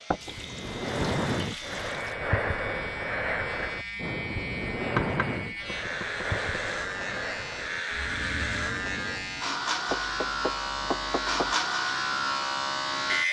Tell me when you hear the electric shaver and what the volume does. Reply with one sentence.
You can hear the electric shaver from 0.0 to 13.2 s, getting louder.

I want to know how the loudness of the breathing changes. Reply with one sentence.
The volume of the breathing goes down.